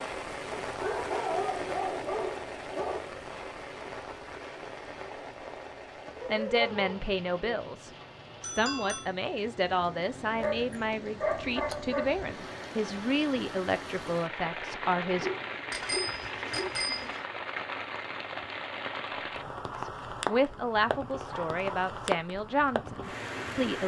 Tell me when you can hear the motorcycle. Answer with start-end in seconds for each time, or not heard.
not heard.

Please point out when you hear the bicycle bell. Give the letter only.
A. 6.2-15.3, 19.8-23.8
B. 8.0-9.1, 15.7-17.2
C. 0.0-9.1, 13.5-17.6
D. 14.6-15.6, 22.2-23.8
B.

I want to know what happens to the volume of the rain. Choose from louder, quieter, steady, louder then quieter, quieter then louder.
quieter then louder.